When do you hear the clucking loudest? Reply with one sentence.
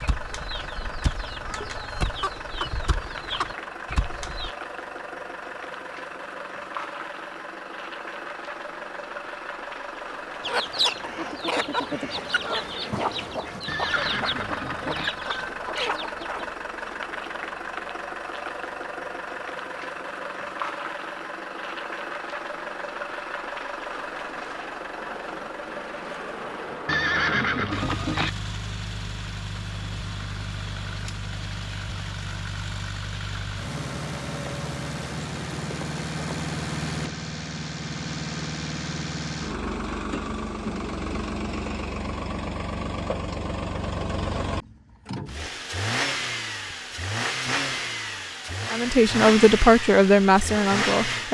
The volume of the clucking peaks at 11 seconds.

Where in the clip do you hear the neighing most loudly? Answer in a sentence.
The loudest moment of the neighing is at 27 seconds.